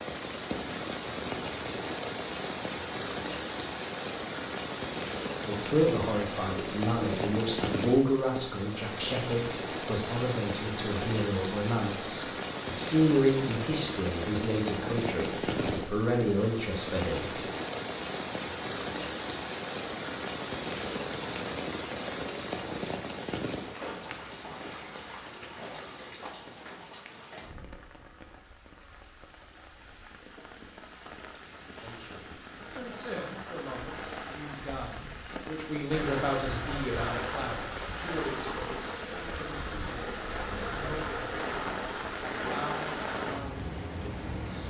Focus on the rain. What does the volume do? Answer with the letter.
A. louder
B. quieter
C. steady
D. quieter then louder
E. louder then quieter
D.